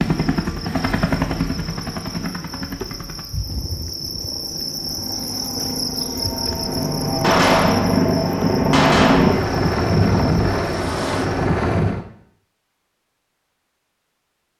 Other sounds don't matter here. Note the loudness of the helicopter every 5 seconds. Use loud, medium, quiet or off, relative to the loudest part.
medium, loud, loud.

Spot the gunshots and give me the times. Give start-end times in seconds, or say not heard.
7.2-9.5.